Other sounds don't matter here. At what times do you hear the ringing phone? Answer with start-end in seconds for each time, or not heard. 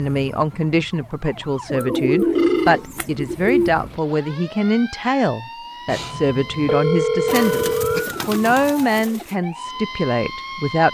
2.4-2.9, 5.8-8.1.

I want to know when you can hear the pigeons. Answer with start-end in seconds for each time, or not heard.
1.7-3.7, 7.2-9.3.